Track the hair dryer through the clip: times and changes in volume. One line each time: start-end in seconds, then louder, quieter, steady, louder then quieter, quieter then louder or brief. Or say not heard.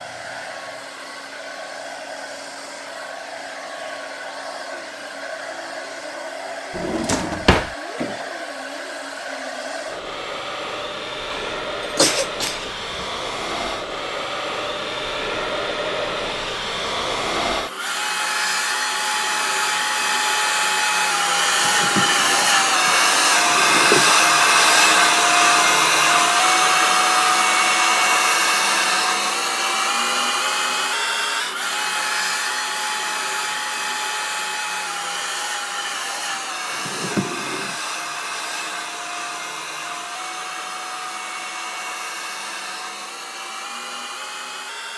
0.0-44.9 louder then quieter.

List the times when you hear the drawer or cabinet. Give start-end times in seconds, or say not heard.
6.7-7.8, 21.6-24.1, 36.8-37.8.